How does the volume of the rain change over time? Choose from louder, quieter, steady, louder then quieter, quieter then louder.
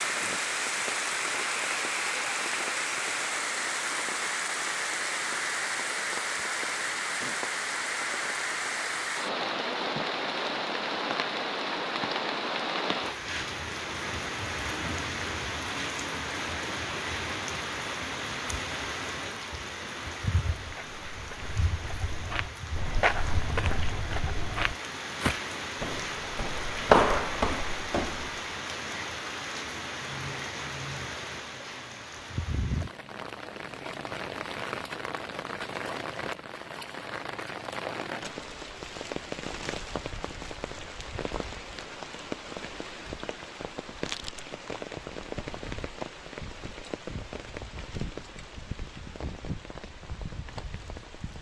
quieter.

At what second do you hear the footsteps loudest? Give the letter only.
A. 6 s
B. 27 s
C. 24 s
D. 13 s
B.